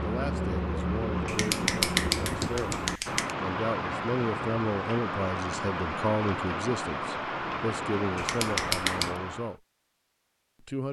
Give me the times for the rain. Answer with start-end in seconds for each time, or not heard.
0.0-9.6.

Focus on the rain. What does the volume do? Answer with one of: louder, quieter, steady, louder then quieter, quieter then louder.
steady.